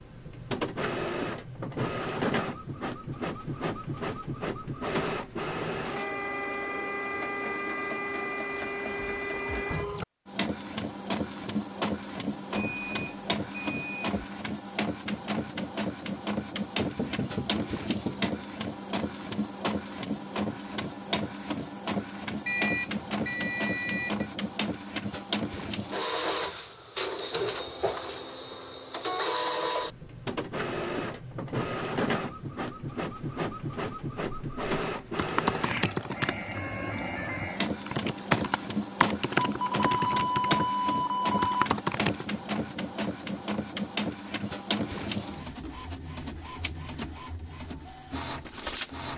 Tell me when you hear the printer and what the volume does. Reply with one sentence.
The printer can be heard from 0.0 to 49.1 s, at a steady volume.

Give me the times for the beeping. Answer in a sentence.
The beeping can be heard from 12.6 to 14.2 s, from 22.4 to 24.2 s and from 39.5 to 41.7 s.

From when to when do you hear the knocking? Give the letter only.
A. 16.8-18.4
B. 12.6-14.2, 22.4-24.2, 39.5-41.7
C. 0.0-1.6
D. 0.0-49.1
A.